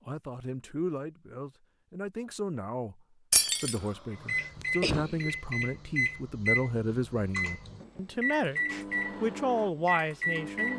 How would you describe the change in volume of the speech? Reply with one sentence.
The volume of the speech goes up.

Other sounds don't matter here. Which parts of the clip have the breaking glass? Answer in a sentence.
You can hear the breaking glass from 3.3 to 3.8 s.